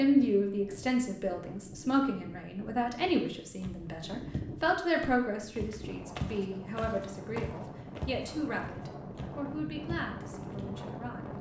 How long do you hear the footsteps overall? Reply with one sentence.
The footsteps can be heard for 8 seconds in total.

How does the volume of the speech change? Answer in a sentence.
The volume of the speech goes down.